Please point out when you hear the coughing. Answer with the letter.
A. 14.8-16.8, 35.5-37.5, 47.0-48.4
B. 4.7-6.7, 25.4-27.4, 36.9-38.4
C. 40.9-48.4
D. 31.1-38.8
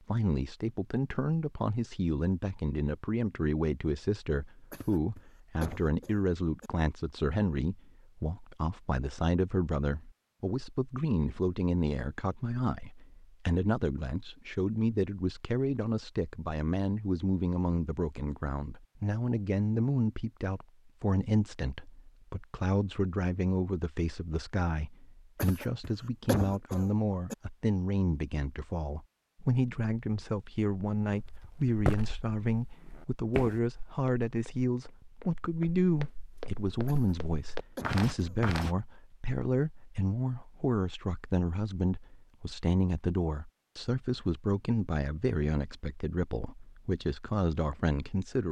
B.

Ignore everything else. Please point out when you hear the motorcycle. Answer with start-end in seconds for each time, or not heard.
not heard.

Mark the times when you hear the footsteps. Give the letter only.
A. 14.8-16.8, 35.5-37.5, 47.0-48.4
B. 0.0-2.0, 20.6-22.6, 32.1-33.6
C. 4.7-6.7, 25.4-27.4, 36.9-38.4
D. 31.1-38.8
D.